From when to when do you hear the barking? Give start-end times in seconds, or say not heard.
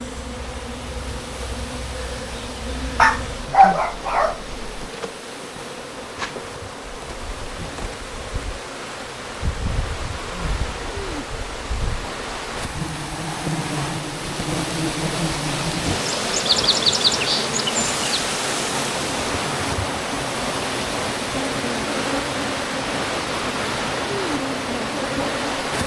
3.0-4.7.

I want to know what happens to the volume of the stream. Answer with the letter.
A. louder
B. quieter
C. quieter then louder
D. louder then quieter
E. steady
A.